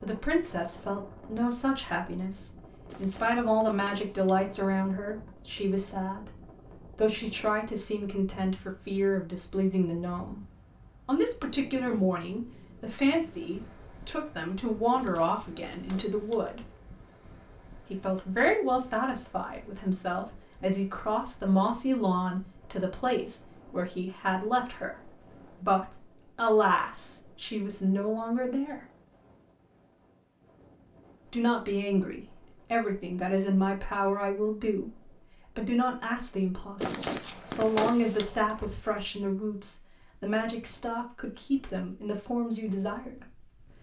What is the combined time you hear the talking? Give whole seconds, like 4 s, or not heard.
39 s.